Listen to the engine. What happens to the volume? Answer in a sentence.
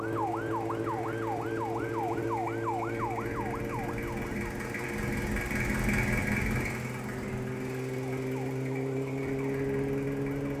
The loudness of the engine goes up, then down.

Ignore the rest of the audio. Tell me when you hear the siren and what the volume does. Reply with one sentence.
You can hear the siren from 0.0 to 10.5 s, getting quieter then louder.